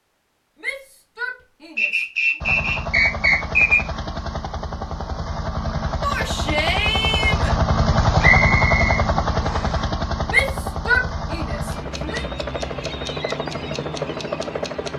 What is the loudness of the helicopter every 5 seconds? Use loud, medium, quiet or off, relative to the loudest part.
medium, loud, medium.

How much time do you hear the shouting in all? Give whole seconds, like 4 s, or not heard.
5 s.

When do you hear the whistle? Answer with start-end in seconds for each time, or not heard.
1.8-3.8, 8.2-9.8.